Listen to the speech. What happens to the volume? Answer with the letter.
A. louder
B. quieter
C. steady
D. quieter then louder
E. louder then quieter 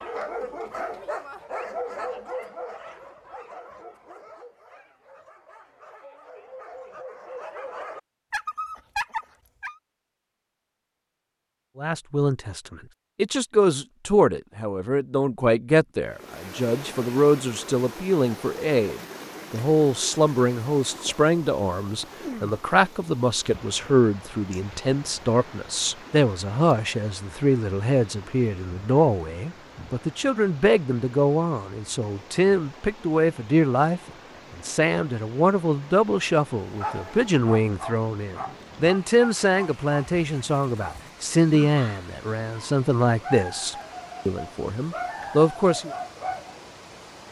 C.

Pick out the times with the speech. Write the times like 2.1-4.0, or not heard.
11.8-45.9.